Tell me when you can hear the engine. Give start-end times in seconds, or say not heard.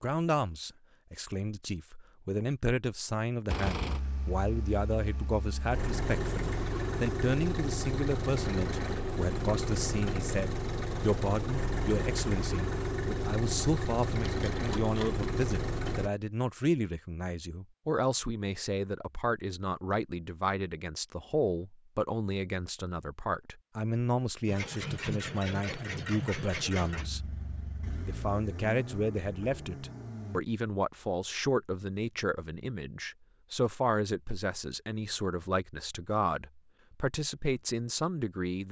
3.5-16.1, 24.4-30.4.